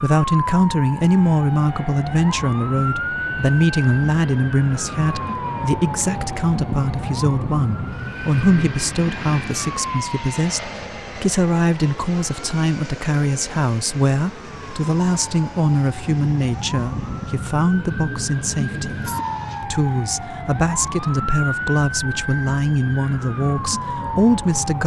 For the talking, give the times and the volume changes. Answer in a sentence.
You can hear the talking from 0.0 to 24.8 s, at a steady volume.